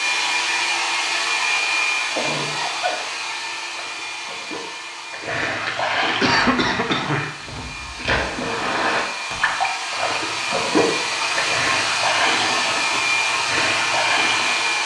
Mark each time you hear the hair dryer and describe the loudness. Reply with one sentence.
The hair dryer can be heard from 0.0 to 14.8 s, getting quieter then louder.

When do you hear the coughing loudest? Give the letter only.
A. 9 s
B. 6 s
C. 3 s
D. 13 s
B.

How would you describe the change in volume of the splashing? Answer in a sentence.
The volume of the splashing goes up.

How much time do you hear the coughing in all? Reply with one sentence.
You can hear the coughing for 3 seconds altogether.